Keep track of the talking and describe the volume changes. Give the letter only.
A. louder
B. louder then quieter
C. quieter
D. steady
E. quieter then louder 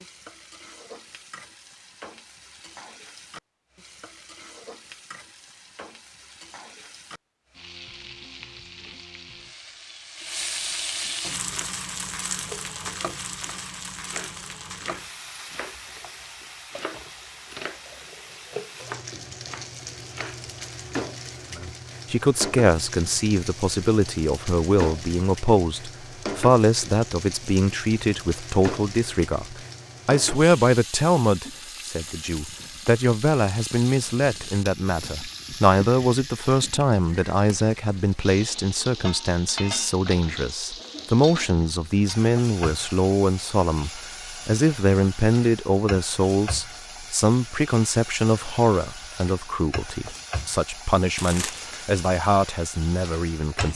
D.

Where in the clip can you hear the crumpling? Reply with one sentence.
You can hear the crumpling from 51.1 to 51.8 s.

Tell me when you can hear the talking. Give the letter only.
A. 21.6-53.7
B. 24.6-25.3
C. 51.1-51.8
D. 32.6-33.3
A.